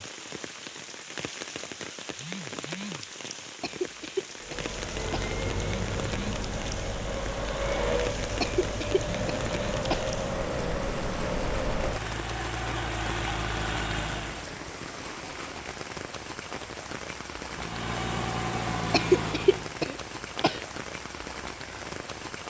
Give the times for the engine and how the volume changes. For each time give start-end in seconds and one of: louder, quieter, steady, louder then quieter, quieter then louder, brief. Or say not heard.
4.4-14.6 steady
17.4-19.8 brief.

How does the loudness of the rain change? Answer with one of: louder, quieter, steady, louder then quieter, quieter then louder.
steady.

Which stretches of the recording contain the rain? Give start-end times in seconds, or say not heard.
0.0-22.4.